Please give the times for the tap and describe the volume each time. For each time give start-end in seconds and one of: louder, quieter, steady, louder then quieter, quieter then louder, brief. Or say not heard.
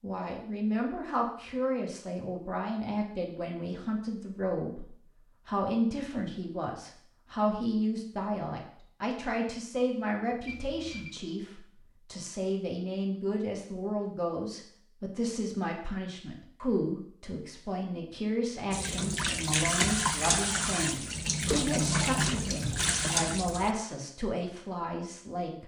18.7-23.8 steady.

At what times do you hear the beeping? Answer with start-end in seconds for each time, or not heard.
10.4-11.2, 22.2-23.1.